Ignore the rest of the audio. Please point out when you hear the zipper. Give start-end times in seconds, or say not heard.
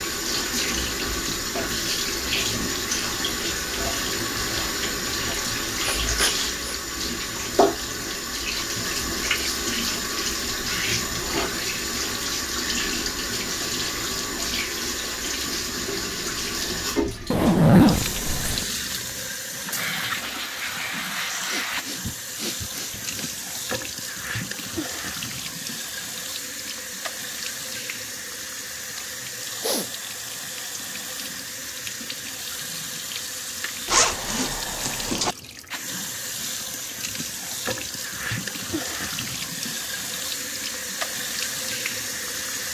17.3-18.6, 33.9-35.4.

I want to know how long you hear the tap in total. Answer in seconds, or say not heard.
43 s.